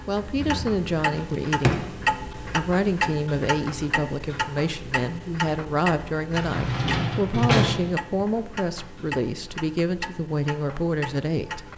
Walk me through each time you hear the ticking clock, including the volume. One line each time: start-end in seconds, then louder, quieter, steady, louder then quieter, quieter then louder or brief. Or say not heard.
0.0-11.7 quieter.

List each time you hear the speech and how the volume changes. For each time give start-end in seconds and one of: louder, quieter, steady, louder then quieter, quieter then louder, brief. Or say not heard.
0.1-11.7 steady.